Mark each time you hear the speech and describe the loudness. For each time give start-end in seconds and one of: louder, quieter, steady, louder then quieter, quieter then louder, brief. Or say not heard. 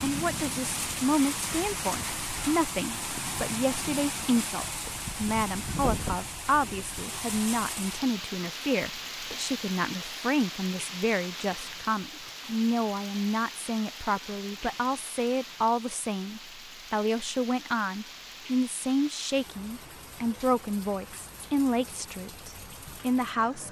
0.0-23.6 steady.